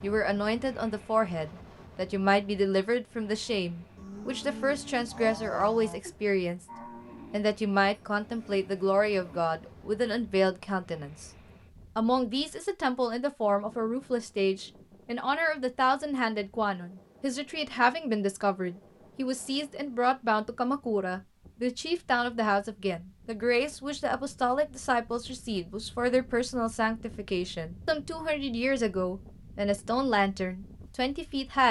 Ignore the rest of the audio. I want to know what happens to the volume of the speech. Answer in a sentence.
The volume of the speech stays about the same.